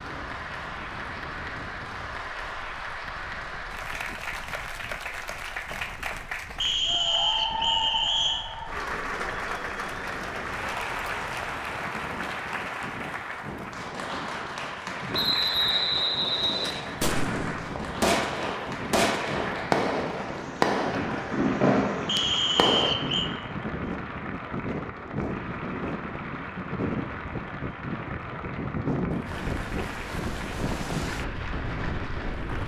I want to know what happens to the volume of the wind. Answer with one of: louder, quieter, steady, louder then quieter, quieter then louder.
louder.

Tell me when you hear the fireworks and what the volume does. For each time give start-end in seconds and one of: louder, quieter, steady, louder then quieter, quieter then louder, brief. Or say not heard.
17.0-22.9 steady.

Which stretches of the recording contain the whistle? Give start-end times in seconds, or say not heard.
6.6-8.4, 15.1-16.9, 22.1-23.3.